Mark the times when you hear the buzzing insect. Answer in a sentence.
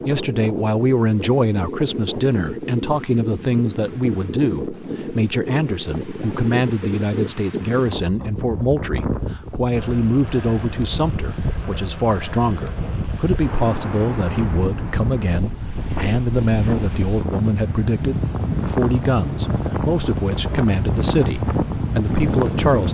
You can't hear the buzzing insect here.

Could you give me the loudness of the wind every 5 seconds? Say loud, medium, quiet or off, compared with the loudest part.
medium, medium, medium, loud, loud.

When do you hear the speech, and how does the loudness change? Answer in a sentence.
The speech can be heard from 0.1 to 22.8 s, at a steady volume.